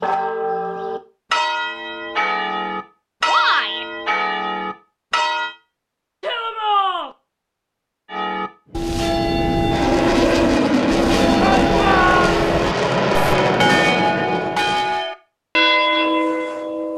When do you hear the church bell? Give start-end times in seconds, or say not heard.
0.0-5.5, 8.1-16.9.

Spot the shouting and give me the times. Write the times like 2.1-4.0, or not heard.
3.2-3.9, 6.2-7.1, 11.4-12.4.